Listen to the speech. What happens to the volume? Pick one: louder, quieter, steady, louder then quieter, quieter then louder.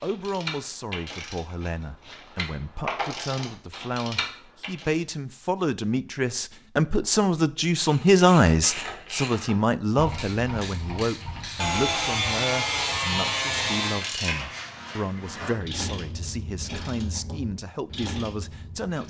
louder then quieter.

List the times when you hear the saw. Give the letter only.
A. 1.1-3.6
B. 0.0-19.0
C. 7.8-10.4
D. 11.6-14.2
D.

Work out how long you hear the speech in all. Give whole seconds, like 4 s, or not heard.
19 s.